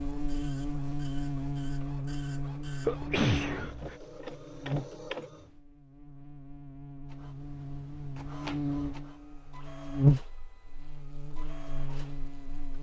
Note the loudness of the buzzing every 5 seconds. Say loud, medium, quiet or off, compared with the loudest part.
medium, medium, loud.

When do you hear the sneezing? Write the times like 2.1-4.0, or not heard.
2.8-4.0.